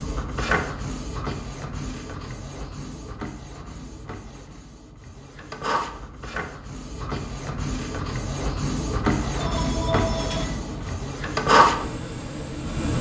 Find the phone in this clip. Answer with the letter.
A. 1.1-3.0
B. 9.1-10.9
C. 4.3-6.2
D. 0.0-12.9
B.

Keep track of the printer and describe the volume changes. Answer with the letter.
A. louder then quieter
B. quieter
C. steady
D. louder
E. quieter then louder
E.